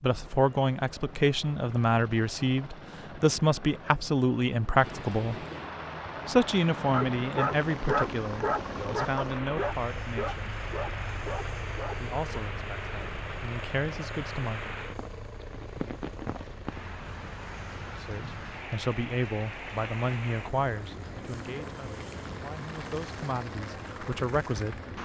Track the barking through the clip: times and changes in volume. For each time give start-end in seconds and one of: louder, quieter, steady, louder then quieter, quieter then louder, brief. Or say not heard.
6.9-12.4 quieter.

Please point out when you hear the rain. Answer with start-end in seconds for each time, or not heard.
4.8-25.0.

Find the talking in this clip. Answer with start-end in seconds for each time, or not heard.
0.0-5.4, 6.2-10.6, 11.9-14.8, 17.9-25.0.